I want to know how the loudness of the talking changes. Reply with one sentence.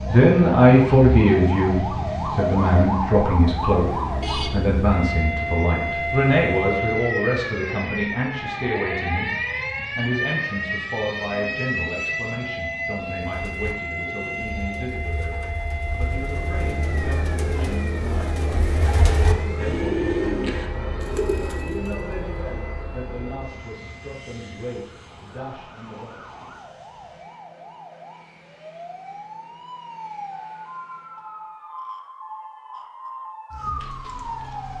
The volume of the talking goes down.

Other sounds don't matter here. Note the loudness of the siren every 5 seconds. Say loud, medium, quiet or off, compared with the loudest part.
loud, loud, loud, medium, quiet, quiet, medium.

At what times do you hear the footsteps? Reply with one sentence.
You can't hear the footsteps here.